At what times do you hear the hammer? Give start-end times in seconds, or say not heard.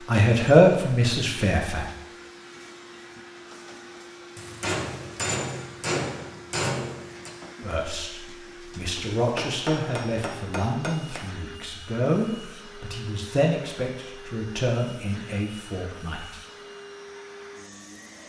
4.3-7.3, 9.2-11.2.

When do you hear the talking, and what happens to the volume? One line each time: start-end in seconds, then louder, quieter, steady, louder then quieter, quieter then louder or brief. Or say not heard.
0.1-1.9 brief
7.6-16.4 steady.